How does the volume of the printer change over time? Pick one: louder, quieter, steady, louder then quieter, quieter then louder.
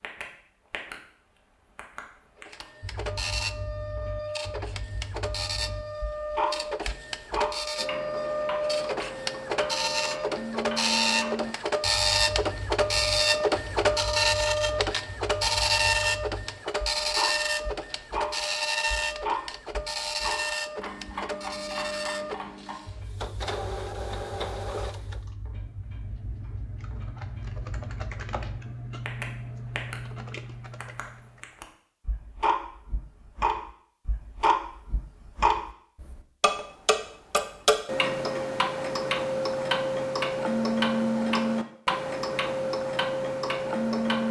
louder then quieter.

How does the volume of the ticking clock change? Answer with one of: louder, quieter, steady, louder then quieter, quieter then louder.
louder.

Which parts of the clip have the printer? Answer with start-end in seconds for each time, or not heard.
2.4-25.2.